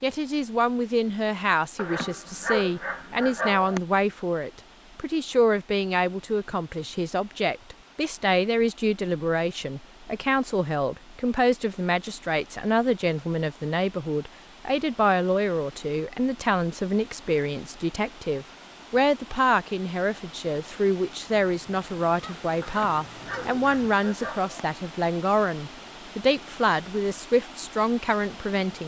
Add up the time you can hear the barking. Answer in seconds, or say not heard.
4 s.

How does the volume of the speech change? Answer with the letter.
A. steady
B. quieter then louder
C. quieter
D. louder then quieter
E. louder
A.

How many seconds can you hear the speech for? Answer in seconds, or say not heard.
29 s.